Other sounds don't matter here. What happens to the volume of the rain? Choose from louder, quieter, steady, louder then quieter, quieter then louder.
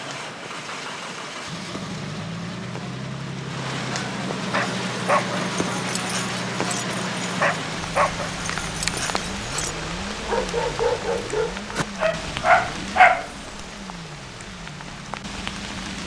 louder then quieter.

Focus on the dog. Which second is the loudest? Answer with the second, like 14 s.
13 s.